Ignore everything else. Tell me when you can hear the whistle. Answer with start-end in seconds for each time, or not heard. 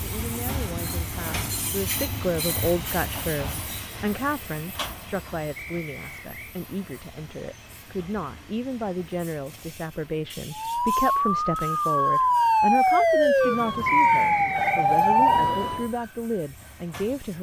5.5-6.5, 13.8-14.8.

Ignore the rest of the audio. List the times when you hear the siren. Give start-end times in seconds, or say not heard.
10.5-15.9.